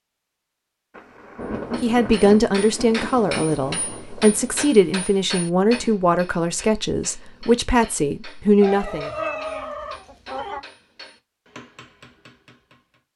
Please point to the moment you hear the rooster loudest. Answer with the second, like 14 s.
9 s.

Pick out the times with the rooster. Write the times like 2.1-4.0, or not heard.
8.6-10.6.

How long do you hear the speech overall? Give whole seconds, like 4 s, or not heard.
7 s.